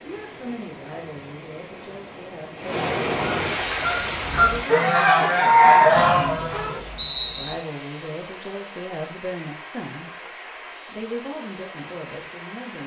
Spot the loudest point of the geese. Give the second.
6 s.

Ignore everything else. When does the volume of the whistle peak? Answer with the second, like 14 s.
7 s.